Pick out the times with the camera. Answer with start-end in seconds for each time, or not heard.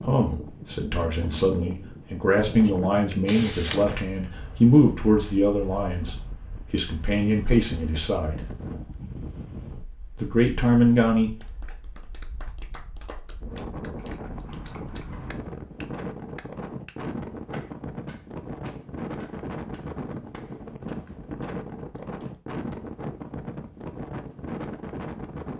2.6-3.9.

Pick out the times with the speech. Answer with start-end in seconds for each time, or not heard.
0.0-8.5, 10.2-11.3.